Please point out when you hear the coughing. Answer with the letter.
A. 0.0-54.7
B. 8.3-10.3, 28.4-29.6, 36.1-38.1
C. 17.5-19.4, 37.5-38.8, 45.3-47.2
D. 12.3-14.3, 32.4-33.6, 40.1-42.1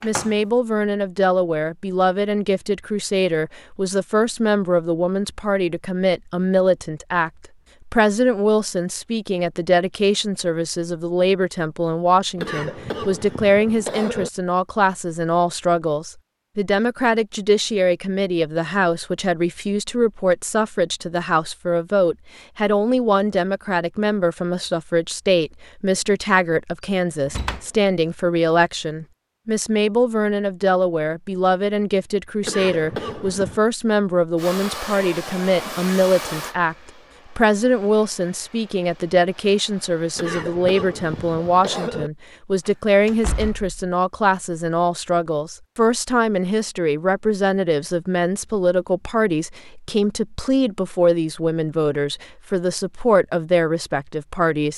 D.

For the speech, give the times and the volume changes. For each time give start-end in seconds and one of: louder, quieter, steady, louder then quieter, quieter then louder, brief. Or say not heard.
0.0-54.7 steady.